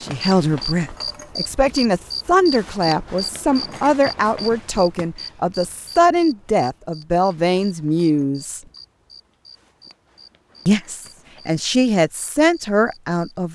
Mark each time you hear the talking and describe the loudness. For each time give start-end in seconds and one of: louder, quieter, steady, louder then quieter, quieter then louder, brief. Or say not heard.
0.0-8.6 steady
10.7-13.5 brief.